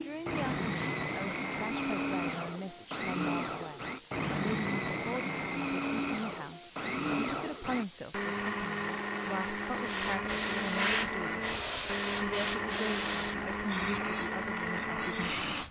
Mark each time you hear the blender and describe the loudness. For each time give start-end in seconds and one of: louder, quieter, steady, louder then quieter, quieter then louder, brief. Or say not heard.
0.0-15.6 steady.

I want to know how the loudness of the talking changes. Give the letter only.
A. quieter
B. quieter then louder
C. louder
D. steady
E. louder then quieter
D.